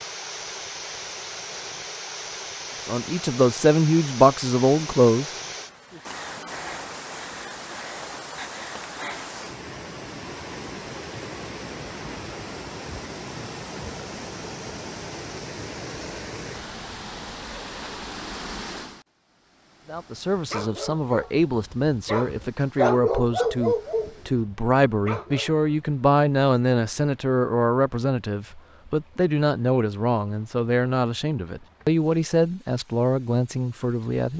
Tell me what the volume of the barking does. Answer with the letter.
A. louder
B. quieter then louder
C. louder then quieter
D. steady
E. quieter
C.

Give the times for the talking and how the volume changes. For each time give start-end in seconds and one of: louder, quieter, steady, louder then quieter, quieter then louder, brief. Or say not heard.
2.9-5.2 brief
19.9-34.3 steady.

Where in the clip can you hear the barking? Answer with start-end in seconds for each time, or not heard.
19.9-25.7.